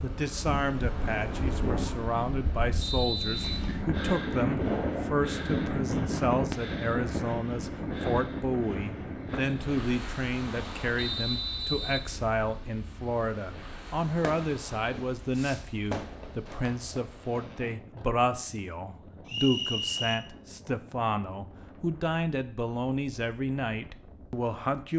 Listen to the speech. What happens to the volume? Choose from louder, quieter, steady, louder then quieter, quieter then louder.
steady.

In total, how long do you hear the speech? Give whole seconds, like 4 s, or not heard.
25 s.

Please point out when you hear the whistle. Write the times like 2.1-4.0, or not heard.
2.8-3.6, 10.9-12.1, 19.2-20.2.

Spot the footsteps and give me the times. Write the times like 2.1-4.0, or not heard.
not heard.